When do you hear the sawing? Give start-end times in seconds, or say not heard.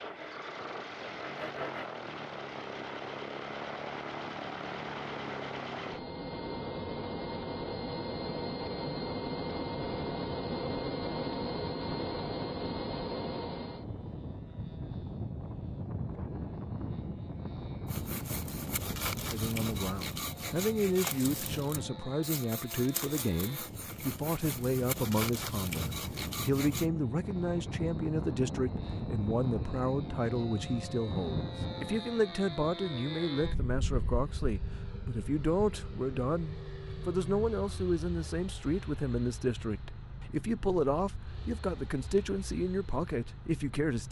0.0-1.9, 17.9-26.9.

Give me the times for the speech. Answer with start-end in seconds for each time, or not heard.
19.2-44.0.